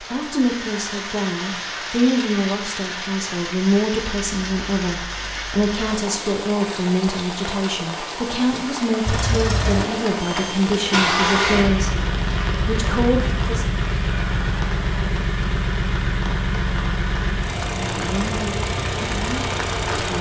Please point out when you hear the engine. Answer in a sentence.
You can hear the engine from 9.1 to 20.1 s.